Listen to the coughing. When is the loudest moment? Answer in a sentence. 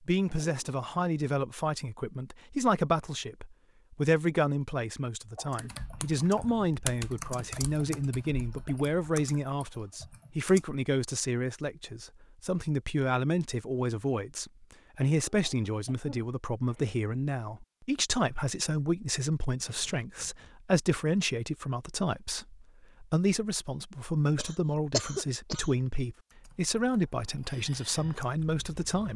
The volume of the coughing peaks at 25 seconds.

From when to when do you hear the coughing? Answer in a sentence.
You can hear the coughing from 5.3 to 5.8 s, from 15.2 to 17.0 s and from 24.4 to 25.8 s.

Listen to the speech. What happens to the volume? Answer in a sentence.
The volume of the speech stays about the same.